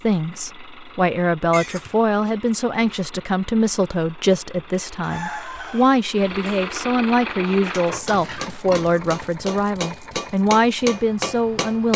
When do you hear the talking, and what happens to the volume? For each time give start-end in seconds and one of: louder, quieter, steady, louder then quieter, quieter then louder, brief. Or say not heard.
0.0-11.9 steady.